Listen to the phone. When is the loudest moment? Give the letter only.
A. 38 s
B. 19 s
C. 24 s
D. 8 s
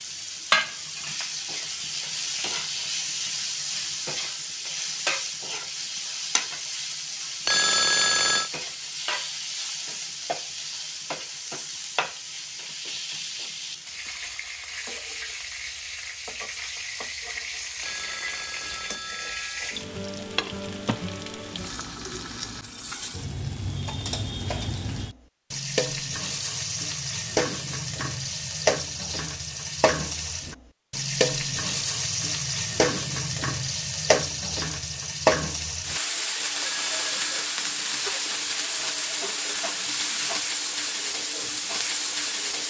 D.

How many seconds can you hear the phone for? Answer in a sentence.
You can hear the phone for 4 seconds altogether.